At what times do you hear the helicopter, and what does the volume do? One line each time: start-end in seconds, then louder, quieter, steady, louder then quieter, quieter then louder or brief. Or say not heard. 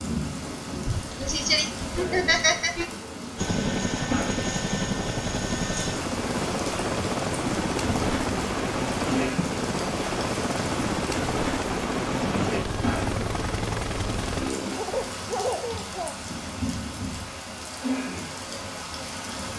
3.4-14.8 steady.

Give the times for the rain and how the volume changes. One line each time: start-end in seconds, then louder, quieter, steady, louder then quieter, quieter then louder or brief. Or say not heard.
0.0-19.5 steady.